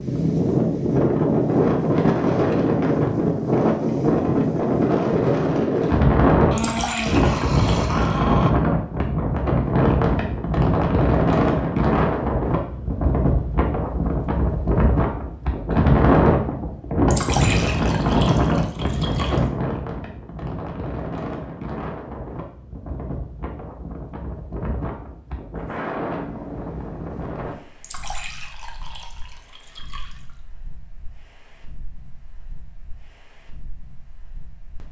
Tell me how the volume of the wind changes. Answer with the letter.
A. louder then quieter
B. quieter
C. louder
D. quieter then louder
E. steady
B.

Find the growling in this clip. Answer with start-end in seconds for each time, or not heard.
6.5-8.5.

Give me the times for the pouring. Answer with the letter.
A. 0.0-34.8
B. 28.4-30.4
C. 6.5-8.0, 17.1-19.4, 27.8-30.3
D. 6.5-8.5
C.